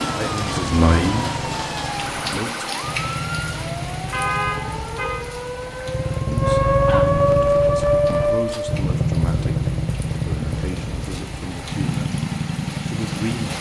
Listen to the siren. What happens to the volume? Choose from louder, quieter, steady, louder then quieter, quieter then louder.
louder.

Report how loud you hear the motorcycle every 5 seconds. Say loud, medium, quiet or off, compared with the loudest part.
medium, loud, loud.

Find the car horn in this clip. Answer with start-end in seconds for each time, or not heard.
4.1-5.2.